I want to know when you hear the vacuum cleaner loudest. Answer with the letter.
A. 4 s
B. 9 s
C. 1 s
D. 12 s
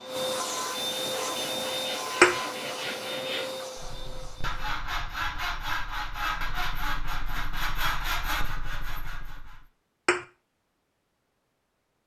C.